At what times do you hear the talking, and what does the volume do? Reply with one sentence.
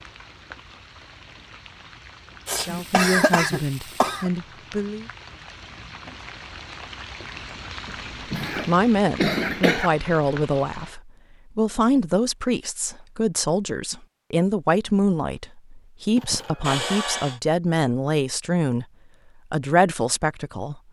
The talking can be heard briefly from 2.6 to 5.0 s; from 8.7 to 18.9 s, at a steady volume; and briefly from 19.5 to 20.8 s.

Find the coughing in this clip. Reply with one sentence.
You can hear the coughing from 2.5 to 4.3 s, from 7.8 to 9.9 s and from 16.1 to 17.4 s.